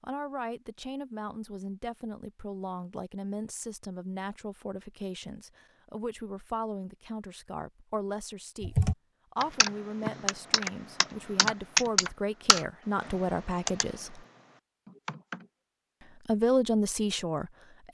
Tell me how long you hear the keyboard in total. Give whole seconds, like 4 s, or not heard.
7 s.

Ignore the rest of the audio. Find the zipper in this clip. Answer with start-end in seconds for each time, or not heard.
not heard.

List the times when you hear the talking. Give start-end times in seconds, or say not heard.
0.0-14.2, 16.2-17.8.